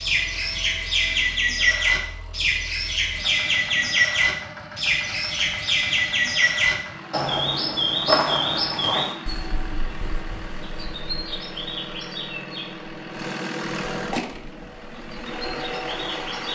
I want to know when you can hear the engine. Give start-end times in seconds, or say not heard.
0.0-16.5.